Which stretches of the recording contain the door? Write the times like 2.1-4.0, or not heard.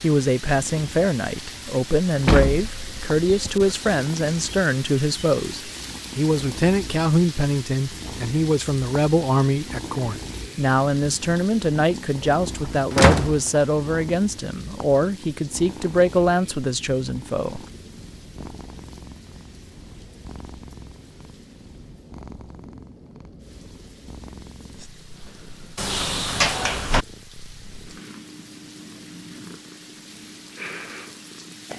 2.2-3.8, 12.9-13.4, 25.8-27.1.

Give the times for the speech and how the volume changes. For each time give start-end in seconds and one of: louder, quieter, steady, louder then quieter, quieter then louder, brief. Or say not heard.
0.0-17.6 steady.